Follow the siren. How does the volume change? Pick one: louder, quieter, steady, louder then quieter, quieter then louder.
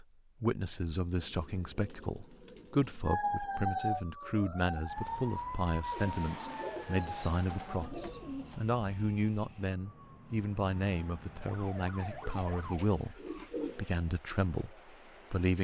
quieter then louder.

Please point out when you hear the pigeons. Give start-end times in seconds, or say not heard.
1.1-3.2, 5.9-8.6, 12.2-13.9.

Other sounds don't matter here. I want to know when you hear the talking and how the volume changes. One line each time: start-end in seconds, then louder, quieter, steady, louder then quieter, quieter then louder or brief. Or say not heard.
0.0-13.2 steady
13.8-15.5 brief.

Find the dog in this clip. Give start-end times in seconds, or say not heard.
not heard.